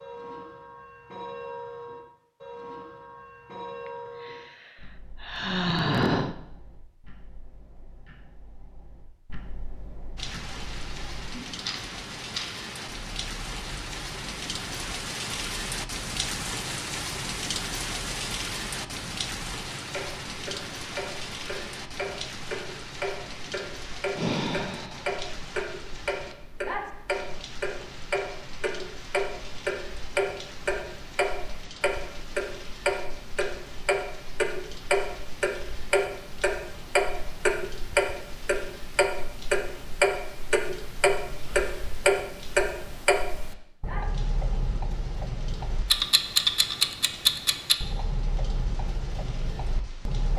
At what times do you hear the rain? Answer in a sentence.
You can hear the rain from 10.2 to 50.3 s.